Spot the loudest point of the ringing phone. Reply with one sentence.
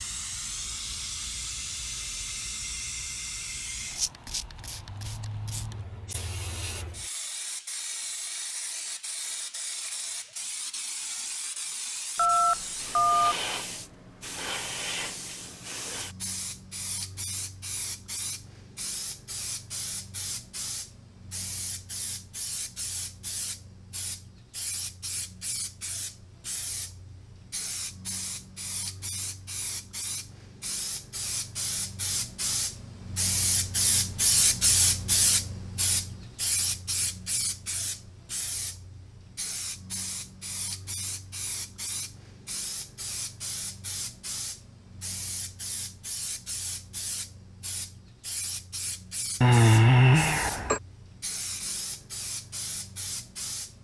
The volume of the ringing phone peaks at 50 seconds.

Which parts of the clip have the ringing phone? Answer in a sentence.
The ringing phone can be heard from 12.2 to 13.3 s and from 49.4 to 50.8 s.